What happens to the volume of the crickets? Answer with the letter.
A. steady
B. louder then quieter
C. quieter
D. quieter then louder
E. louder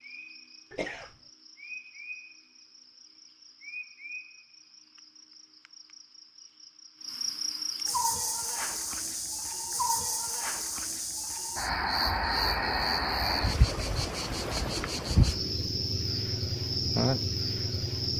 E.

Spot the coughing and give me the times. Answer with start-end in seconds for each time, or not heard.
0.7-1.1.